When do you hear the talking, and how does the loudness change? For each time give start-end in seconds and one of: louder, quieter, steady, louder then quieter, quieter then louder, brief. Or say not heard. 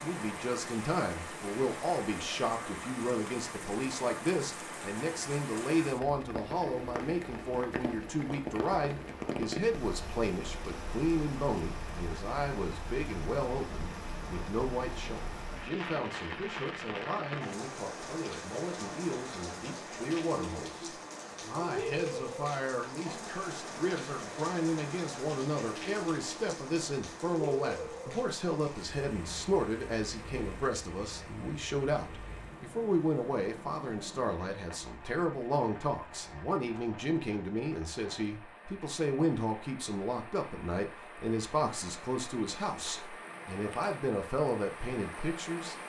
0.0-45.8 steady.